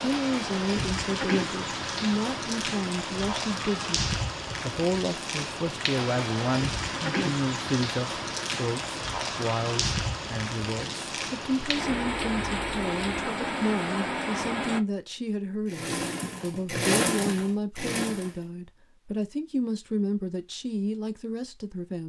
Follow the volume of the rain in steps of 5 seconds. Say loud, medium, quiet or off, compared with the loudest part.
loud, loud, loud, off, off.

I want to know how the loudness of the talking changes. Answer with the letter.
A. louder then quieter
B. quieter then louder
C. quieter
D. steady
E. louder
D.